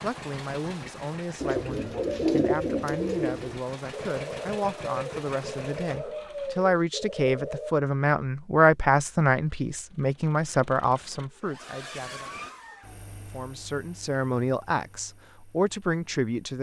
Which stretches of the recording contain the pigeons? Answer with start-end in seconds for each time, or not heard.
1.4-7.8.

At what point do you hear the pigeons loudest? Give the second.
2 s.